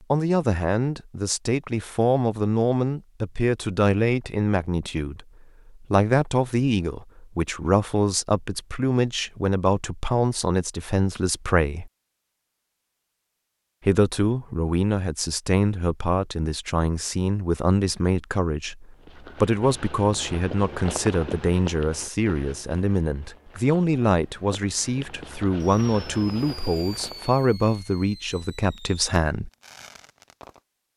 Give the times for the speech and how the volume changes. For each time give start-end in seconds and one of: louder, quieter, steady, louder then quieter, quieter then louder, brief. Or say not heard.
0.1-11.9 steady
13.8-29.5 steady.